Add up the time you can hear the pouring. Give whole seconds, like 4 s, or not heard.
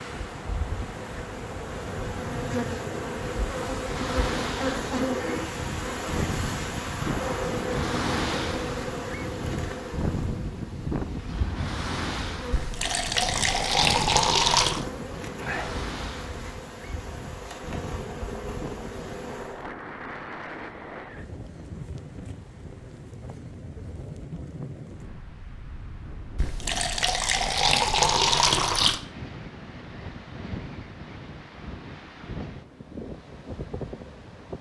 5 s.